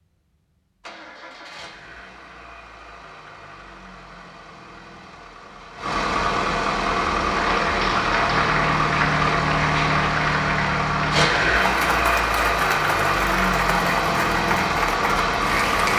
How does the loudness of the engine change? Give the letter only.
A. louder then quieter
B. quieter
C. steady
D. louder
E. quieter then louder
D.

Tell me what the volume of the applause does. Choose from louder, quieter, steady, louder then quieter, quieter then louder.
steady.